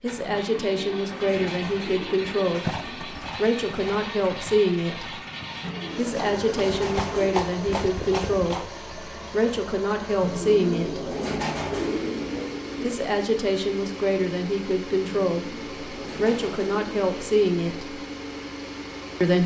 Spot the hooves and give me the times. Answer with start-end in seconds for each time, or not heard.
2.5-8.7.